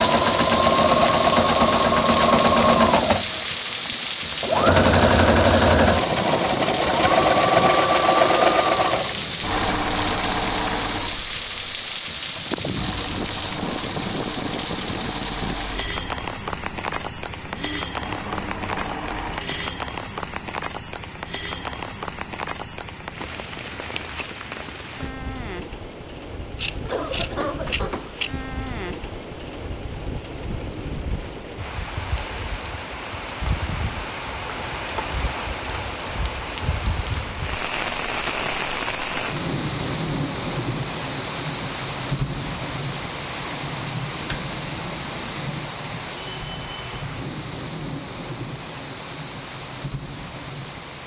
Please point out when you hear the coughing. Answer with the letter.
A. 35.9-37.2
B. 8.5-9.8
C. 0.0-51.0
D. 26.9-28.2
D.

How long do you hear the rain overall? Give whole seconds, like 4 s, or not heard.
51 s.